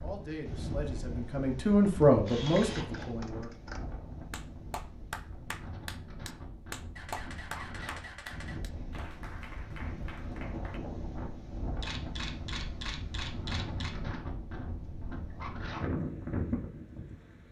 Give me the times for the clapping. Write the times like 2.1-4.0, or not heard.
2.0-10.8.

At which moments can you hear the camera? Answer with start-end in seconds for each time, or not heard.
2.2-3.1, 7.0-8.6, 11.8-13.9.